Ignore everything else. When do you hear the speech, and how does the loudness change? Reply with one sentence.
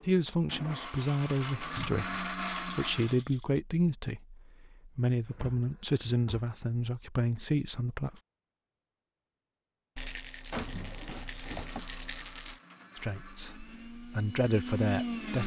The speech can be heard from 0.1 to 8.2 s, at a steady volume; and briefly from 12.9 to 15.4 s.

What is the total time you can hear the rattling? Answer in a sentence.
The rattling can be heard for 4 seconds in total.